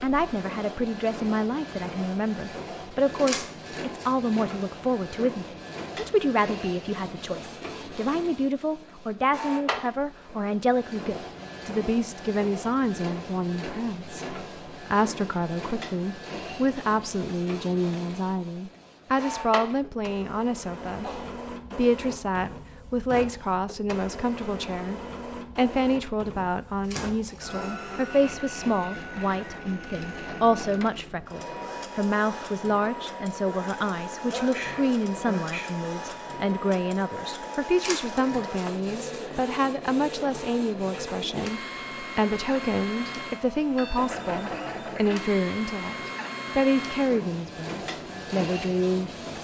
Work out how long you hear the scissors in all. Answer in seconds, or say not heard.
3 s.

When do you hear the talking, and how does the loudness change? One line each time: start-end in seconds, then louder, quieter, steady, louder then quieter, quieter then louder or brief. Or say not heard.
0.0-49.1 steady.